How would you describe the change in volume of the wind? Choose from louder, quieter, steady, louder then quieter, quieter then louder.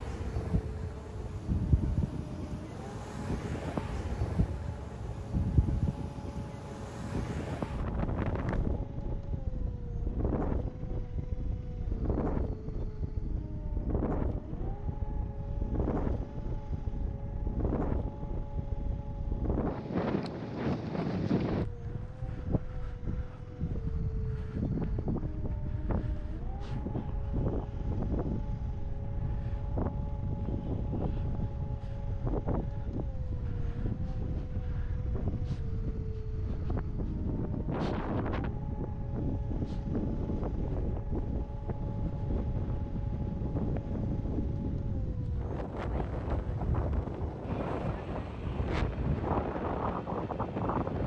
steady.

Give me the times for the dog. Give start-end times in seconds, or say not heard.
not heard.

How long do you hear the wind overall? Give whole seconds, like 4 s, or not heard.
51 s.